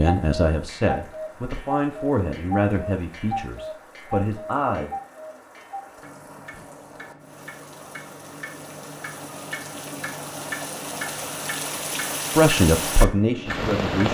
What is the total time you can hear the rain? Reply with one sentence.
You can hear the rain for 14 seconds altogether.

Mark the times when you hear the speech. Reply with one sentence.
You can hear the speech from 0.0 to 4.9 s and from 12.3 to 14.1 s.